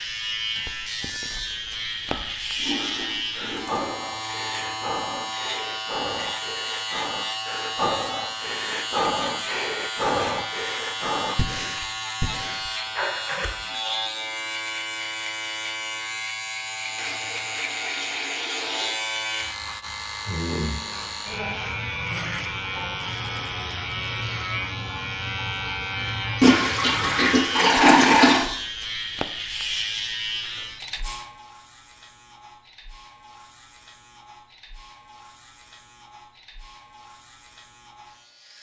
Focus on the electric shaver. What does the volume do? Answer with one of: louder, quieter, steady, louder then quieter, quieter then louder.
quieter.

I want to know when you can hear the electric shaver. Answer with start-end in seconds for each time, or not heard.
0.0-38.5.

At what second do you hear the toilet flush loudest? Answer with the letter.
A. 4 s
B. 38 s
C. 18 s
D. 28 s
D.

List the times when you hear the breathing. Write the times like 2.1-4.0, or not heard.
2.0-13.8.